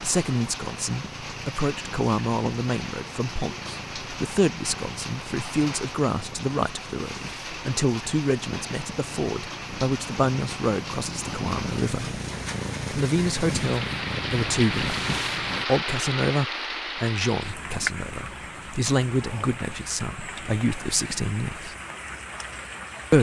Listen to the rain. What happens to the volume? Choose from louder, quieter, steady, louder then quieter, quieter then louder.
louder then quieter.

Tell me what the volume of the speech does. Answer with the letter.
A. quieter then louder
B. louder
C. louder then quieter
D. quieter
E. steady
E.